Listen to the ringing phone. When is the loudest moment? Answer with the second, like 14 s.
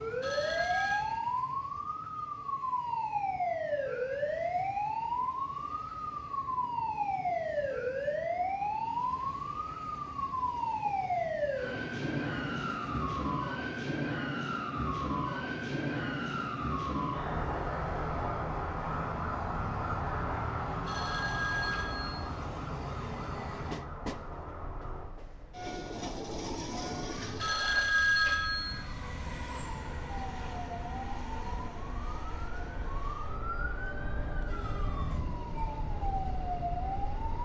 28 s.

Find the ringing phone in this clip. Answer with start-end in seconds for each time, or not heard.
0.2-1.0, 20.9-22.3, 27.4-28.8.